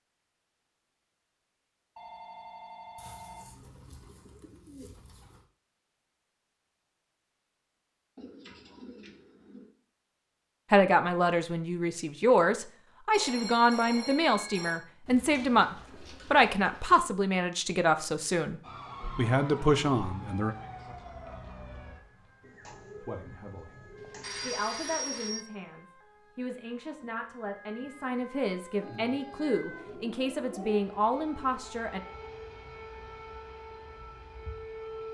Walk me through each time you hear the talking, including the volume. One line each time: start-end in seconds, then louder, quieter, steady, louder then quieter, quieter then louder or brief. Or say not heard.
10.7-20.6 steady
23.0-23.8 brief
24.4-32.0 louder.